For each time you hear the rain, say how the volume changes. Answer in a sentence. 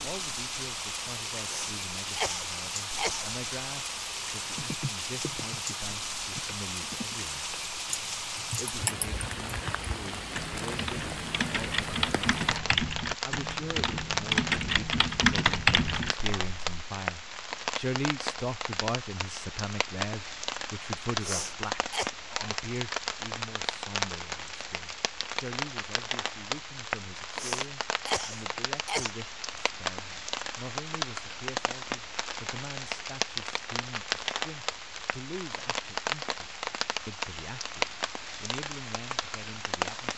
The rain can be heard from 0.0 to 40.1 s, at a steady volume.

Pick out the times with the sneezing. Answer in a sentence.
You can hear the sneezing from 1.4 to 3.3 s, from 21.2 to 22.1 s and from 27.4 to 29.1 s.